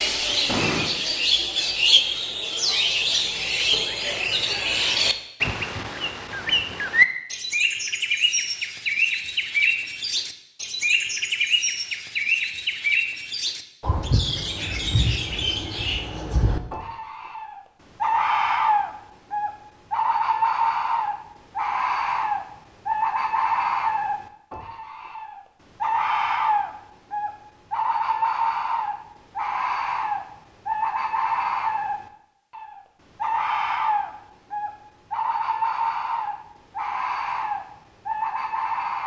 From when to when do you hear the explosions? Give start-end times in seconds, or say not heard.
0.5-0.9.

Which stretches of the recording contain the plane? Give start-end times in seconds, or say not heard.
not heard.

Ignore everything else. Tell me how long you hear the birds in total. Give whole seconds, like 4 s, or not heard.
39 s.